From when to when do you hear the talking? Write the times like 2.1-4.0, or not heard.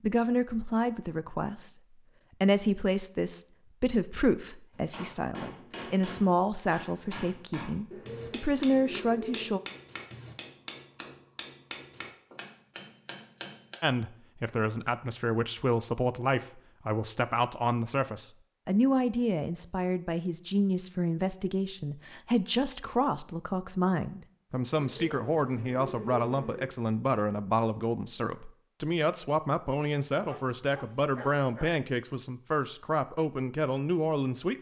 0.0-1.7, 2.4-9.6, 13.8-34.5.